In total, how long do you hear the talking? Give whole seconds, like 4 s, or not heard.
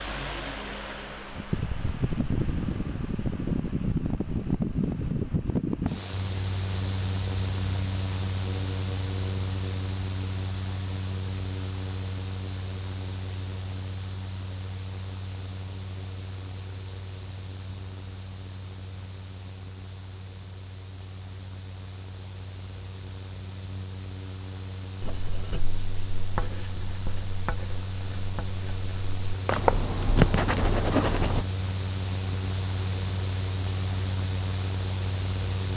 not heard.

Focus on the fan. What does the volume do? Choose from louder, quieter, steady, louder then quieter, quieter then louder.
quieter then louder.